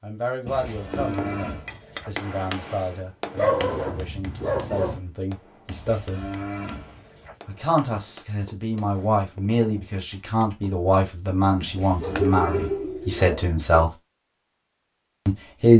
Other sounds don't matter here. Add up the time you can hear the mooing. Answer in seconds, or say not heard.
5 s.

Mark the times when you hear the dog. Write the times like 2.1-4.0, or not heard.
3.4-5.0, 12.0-13.8.